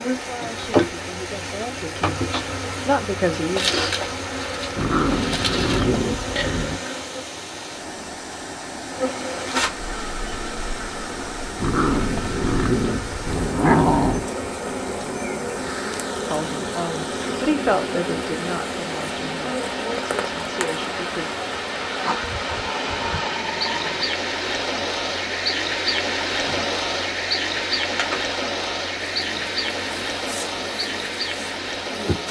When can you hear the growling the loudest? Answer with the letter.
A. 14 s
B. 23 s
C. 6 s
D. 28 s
A.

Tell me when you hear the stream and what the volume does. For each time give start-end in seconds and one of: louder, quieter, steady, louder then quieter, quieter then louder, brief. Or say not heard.
0.0-32.2 louder.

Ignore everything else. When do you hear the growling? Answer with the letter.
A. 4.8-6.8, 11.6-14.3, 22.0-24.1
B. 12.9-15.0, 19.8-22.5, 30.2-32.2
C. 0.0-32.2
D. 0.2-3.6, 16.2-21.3
A.